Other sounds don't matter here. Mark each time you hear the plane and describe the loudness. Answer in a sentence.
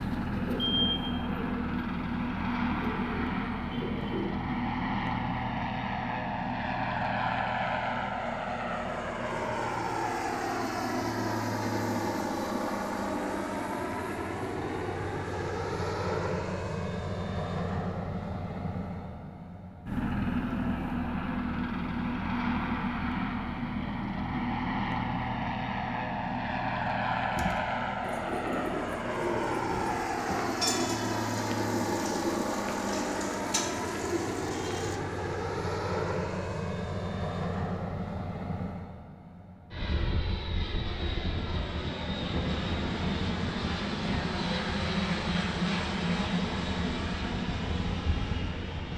You can hear the plane from 0.0 to 48.9 s, at a steady volume.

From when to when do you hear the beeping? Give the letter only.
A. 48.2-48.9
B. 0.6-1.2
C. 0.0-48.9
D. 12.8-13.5
B.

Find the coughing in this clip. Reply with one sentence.
The coughing can't be heard in this clip.